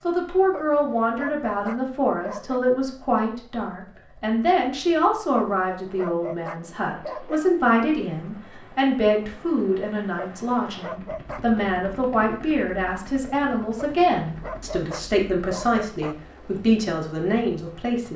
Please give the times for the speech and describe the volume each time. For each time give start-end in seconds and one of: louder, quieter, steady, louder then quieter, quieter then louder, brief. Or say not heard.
0.0-18.1 steady.